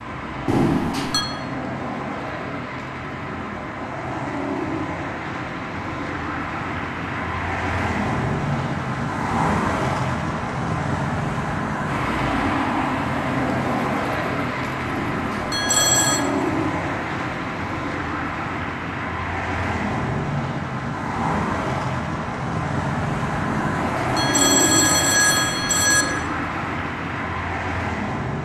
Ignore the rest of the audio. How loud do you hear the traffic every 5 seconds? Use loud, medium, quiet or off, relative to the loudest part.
medium, loud, loud, loud, loud, loud.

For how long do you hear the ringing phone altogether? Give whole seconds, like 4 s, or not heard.
5 s.